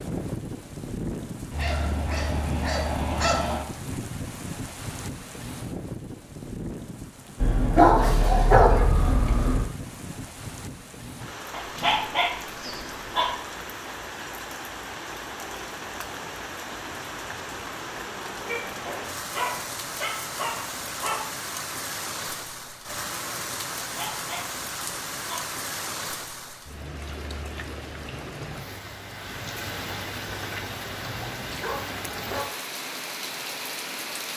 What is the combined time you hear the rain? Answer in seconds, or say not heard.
34 s.